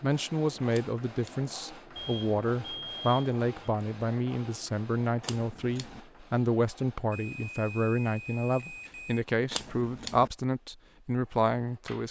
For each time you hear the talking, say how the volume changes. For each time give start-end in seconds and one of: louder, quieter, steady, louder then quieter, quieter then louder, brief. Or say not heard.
0.0-12.0 steady.